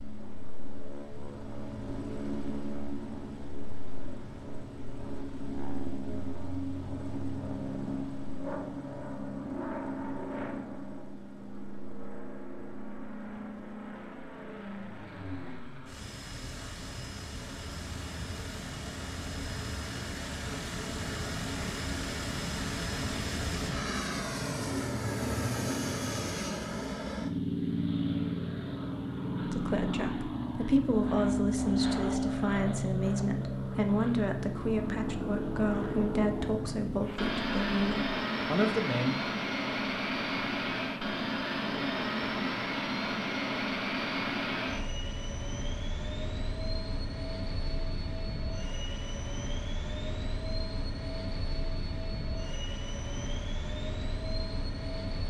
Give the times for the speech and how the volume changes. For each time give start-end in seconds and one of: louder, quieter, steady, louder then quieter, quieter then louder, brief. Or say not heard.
29.4-39.1 steady.